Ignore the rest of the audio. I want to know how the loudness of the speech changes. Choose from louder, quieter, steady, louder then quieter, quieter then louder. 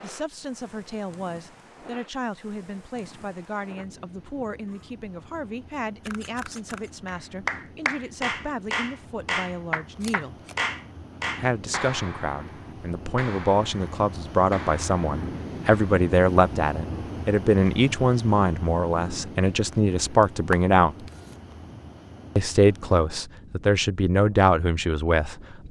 louder.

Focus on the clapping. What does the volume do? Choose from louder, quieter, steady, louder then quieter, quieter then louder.
quieter.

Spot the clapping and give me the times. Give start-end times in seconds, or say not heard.
7.0-15.9.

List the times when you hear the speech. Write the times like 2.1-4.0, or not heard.
0.0-10.3, 11.3-20.9, 22.4-25.6.